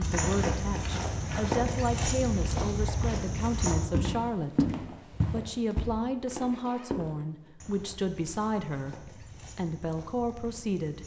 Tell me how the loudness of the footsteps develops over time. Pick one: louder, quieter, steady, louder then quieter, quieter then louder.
quieter.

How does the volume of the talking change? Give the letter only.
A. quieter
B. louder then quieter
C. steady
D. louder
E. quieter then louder
C.